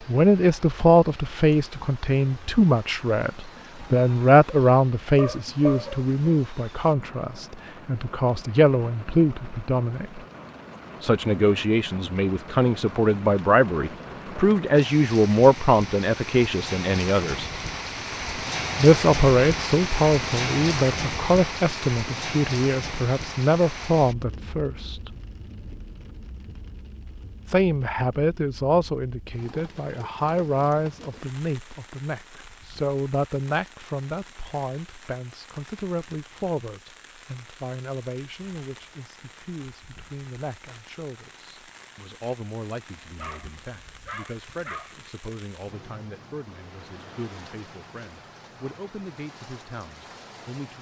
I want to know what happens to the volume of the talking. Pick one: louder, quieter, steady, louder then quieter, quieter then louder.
quieter.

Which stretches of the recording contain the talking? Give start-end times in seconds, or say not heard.
0.1-10.2, 11.0-17.4, 18.8-25.1, 27.4-50.7.